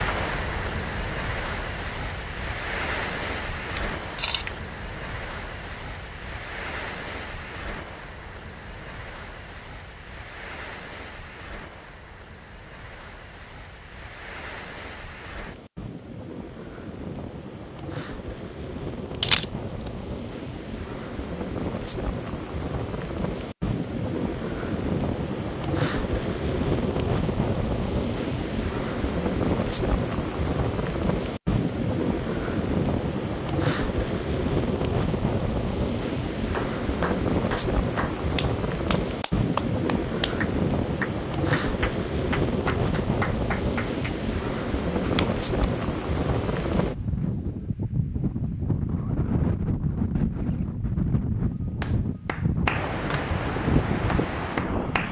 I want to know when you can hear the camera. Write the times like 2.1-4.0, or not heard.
3.8-4.6, 19.2-19.9, 45.0-45.5.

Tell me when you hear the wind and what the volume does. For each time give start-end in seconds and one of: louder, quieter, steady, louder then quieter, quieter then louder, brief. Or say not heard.
0.0-55.0 louder.